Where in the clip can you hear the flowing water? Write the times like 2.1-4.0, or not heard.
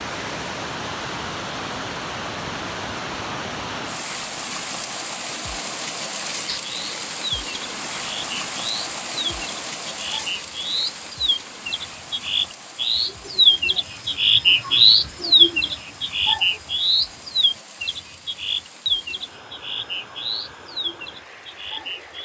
0.0-22.2.